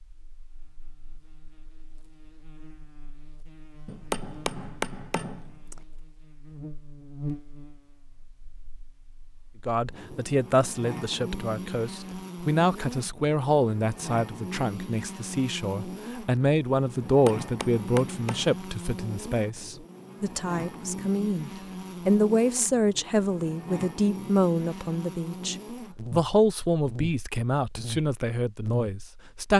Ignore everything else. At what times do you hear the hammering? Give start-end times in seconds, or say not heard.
3.9-5.8, 17.1-18.6.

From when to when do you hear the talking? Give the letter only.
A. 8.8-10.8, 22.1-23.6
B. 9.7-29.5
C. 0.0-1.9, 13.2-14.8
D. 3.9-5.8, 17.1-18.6
B.